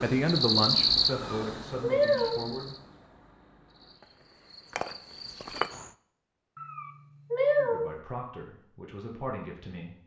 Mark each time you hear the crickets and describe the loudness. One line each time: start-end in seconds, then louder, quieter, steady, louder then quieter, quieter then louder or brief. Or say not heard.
0.0-5.9 quieter then louder.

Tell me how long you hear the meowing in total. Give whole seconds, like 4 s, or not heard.
3 s.